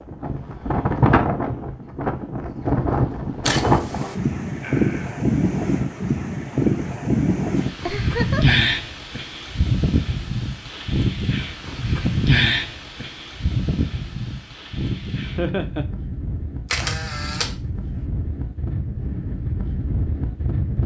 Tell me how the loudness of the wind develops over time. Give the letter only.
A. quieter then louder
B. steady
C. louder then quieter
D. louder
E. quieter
E.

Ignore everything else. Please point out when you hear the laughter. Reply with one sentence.
The laughter can be heard from 4.6 to 5.2 s, from 7.8 to 8.6 s and from 15.3 to 15.8 s.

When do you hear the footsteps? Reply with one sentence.
You can't hear the footsteps here.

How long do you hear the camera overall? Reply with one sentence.
You can hear the camera for 2 seconds altogether.